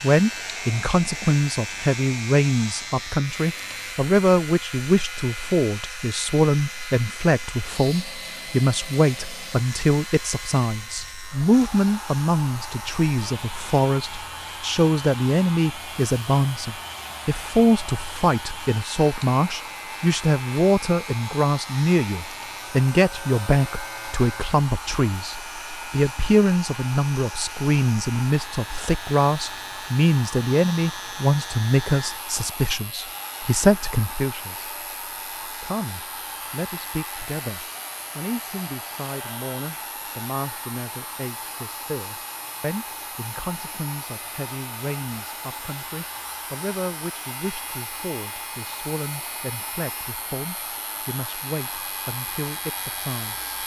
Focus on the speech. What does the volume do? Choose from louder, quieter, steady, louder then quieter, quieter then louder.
quieter.